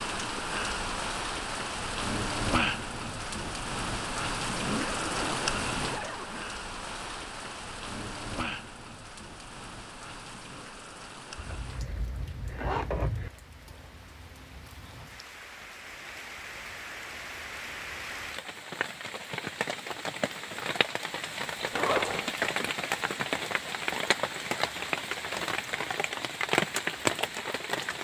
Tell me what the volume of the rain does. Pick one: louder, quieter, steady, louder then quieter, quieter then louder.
quieter then louder.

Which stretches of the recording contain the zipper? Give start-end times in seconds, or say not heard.
4.5-6.5, 11.3-13.3, 21.7-22.3.